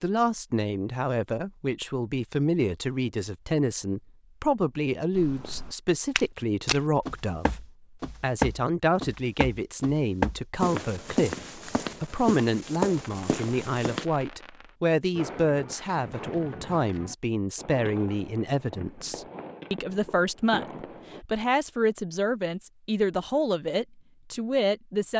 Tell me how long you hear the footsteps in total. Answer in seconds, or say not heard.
9 s.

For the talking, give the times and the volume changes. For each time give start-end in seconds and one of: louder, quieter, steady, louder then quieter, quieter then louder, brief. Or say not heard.
0.0-25.1 steady.